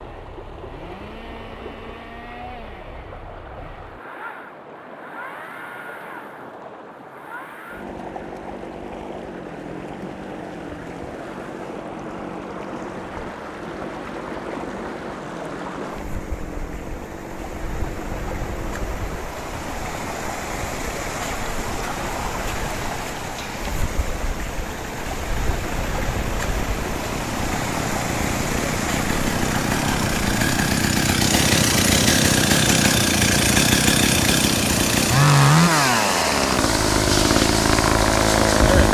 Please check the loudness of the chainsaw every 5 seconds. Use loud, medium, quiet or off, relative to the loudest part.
quiet, quiet, quiet, quiet, quiet, medium, loud, loud.